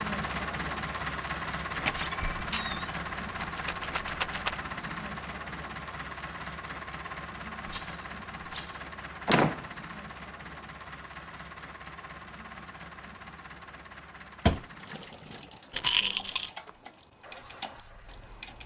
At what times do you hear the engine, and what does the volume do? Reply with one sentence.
The engine can be heard from 0.0 to 18.6 s, getting quieter.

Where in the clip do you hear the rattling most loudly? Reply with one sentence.
The loudest moment of the rattling is at 16 seconds.